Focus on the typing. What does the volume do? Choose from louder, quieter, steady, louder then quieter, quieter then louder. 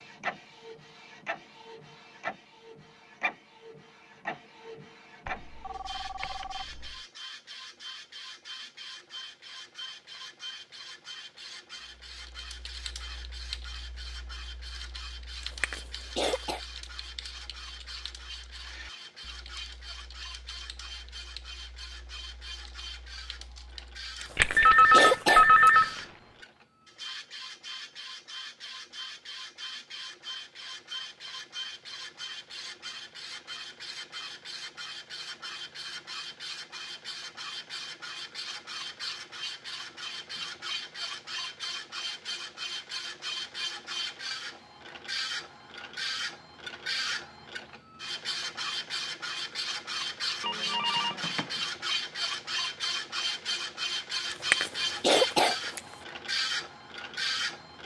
quieter.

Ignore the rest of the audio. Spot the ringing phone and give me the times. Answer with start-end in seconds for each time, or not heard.
5.2-7.0, 24.4-26.0, 50.4-51.5.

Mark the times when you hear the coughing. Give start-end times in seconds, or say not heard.
15.4-16.6, 24.2-25.9, 54.3-56.0.